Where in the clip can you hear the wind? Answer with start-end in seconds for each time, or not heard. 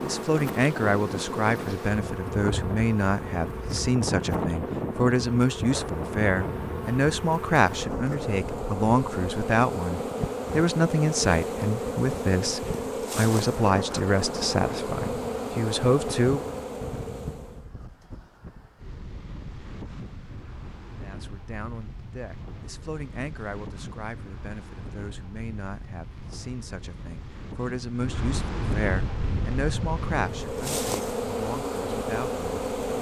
0.0-32.9.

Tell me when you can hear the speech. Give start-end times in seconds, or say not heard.
0.0-16.4, 21.0-32.5.